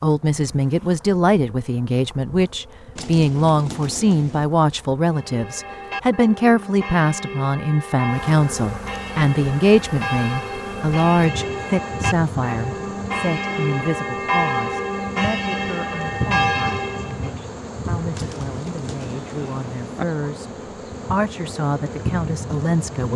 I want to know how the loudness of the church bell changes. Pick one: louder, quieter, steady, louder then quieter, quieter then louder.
louder.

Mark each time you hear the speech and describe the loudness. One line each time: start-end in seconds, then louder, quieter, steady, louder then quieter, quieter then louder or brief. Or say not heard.
0.0-20.5 quieter
21.1-23.1 brief.